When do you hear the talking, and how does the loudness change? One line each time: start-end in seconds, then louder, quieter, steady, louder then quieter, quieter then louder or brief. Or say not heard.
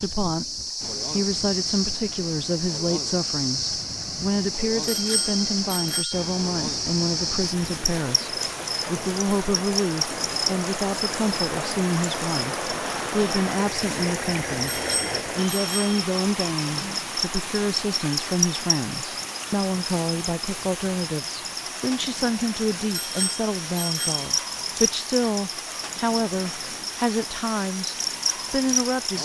0.0-29.2 steady.